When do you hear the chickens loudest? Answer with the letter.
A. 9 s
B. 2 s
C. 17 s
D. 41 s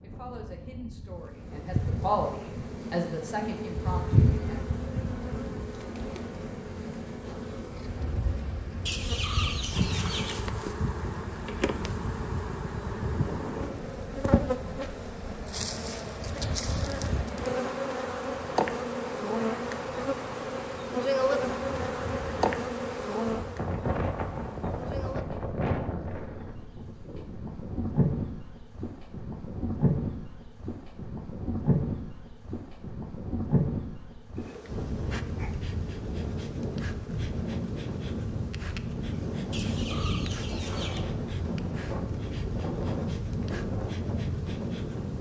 A.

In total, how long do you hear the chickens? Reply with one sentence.
You can hear the chickens for 3 seconds altogether.